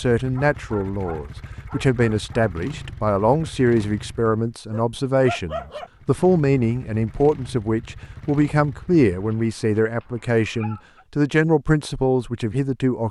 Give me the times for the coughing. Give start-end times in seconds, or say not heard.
not heard.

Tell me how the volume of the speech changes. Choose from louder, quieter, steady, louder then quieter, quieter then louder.
steady.